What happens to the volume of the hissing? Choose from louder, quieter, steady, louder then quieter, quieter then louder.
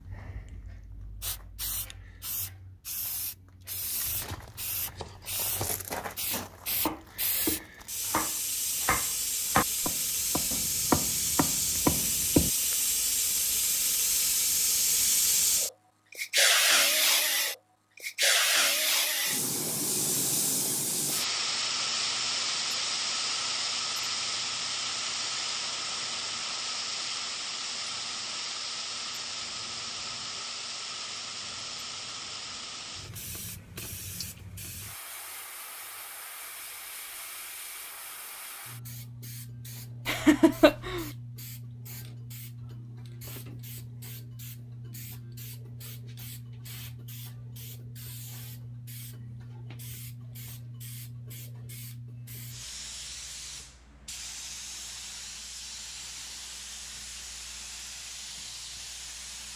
louder then quieter.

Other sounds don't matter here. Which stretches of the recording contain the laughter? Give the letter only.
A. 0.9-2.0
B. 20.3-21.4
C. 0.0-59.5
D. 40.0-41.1
D.